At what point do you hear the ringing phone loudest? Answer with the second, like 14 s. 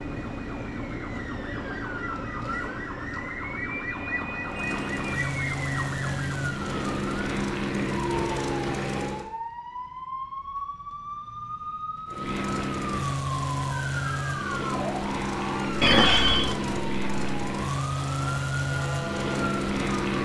16 s.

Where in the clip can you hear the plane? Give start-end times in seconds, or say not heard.
4.5-9.3, 12.1-20.2.